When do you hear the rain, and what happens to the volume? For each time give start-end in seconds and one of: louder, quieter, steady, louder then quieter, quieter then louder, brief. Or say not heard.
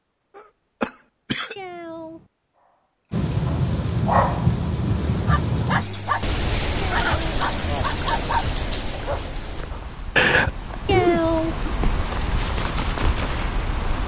3.1-14.0 quieter then louder.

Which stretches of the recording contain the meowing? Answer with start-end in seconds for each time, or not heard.
1.6-2.3, 7.0-7.4, 10.8-11.6.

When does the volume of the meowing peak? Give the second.
11 s.